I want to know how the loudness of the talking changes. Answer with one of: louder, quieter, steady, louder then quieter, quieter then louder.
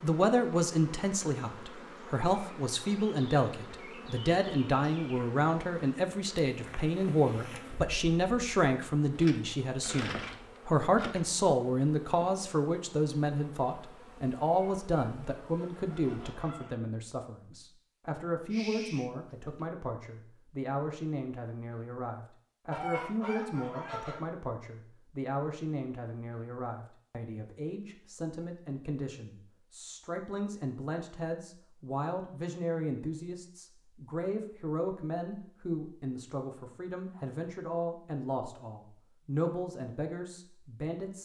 quieter.